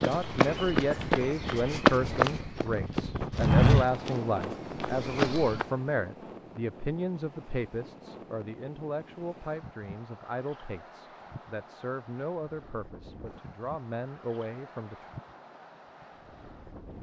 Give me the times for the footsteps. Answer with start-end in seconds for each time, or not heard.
0.0-5.7.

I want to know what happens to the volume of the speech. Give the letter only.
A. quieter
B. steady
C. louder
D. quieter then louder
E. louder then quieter
A.